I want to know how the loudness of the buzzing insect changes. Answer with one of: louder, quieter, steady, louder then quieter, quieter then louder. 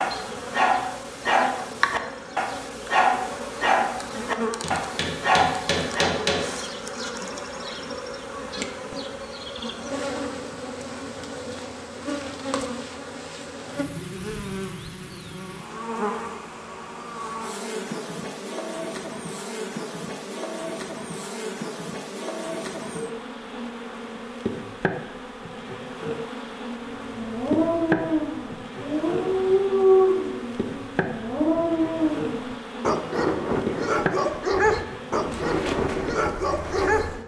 steady.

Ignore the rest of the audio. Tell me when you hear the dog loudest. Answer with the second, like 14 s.
30 s.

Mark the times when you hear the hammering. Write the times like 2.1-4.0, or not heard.
4.6-6.6.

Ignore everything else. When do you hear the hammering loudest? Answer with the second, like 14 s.
6 s.